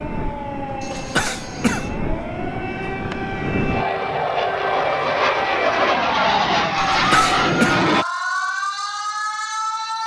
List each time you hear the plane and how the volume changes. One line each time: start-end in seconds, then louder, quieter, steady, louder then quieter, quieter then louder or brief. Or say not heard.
0.0-8.1 louder.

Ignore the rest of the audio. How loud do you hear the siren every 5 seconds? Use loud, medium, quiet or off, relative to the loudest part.
medium, loud.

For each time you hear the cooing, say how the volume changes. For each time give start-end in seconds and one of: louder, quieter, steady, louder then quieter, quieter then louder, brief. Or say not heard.
not heard.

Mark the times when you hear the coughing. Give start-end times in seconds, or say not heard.
0.8-1.9, 6.8-7.8.